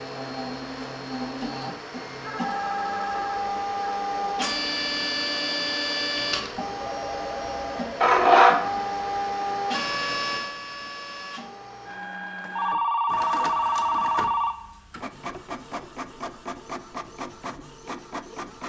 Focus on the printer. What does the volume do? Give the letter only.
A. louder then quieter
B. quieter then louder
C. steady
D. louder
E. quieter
A.